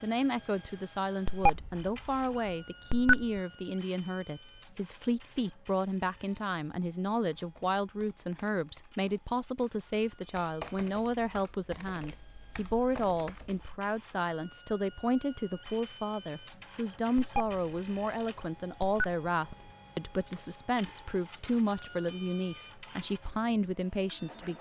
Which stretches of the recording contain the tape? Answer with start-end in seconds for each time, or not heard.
not heard.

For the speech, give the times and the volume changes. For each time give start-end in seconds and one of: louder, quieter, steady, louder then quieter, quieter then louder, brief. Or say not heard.
0.0-24.5 steady.